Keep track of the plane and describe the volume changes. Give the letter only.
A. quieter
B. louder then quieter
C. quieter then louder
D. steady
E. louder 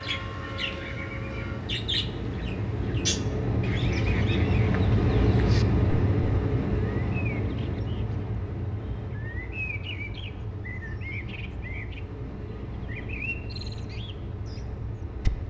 B.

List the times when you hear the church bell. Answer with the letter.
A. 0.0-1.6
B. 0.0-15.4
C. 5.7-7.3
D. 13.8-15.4
A.